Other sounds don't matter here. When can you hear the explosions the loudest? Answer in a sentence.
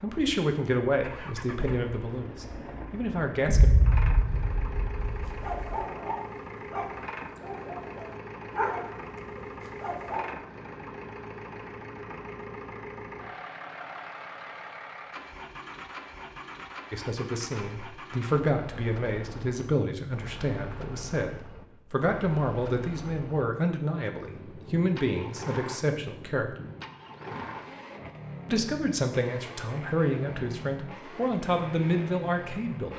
The loudest moment of the explosions is at 4 seconds.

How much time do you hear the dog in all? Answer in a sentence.
You can hear the dog for 5 seconds altogether.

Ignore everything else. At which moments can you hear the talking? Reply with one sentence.
The talking can be heard from 0.0 to 3.7 s, from 16.9 to 26.5 s and from 28.4 to 32.9 s.